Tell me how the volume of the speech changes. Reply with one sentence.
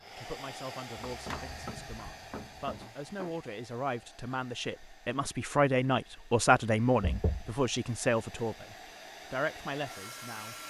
The loudness of the speech goes up, then down.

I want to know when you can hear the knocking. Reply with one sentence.
You can hear the knocking from 0.9 to 2.9 s and from 7.0 to 7.5 s.